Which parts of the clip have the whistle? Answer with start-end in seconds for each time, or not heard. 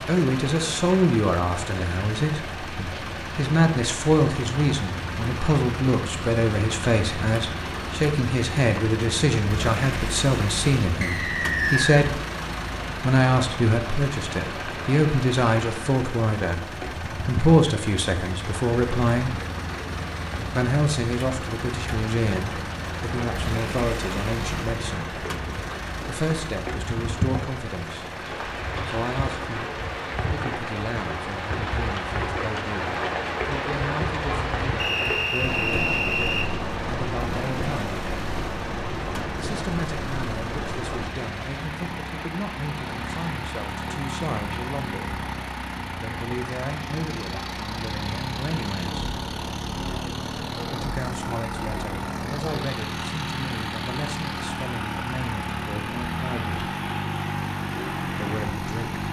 11.0-12.0, 34.8-36.5.